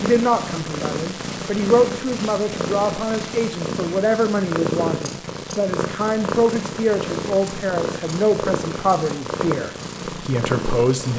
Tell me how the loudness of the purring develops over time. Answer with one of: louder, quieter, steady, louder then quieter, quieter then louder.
steady.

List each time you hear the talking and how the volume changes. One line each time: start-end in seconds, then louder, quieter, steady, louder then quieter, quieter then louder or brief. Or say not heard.
0.0-11.1 steady.